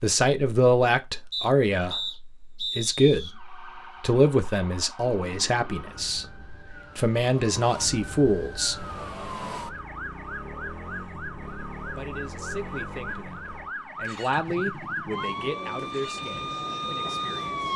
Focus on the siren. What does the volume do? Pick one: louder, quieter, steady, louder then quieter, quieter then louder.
louder.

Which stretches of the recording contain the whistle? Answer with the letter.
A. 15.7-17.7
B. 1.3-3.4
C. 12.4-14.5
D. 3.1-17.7
B.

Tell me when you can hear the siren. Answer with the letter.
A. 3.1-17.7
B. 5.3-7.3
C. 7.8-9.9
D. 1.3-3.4
A.